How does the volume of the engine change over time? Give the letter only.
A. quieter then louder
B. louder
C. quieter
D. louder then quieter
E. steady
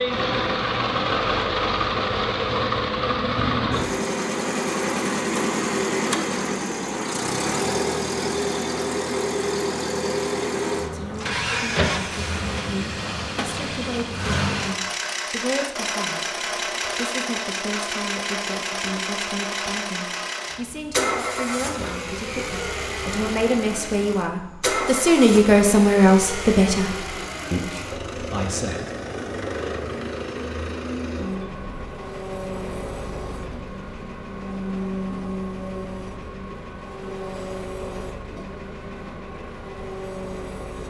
C.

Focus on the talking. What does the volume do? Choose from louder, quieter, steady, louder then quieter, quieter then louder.
louder.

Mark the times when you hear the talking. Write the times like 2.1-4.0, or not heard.
10.8-28.9.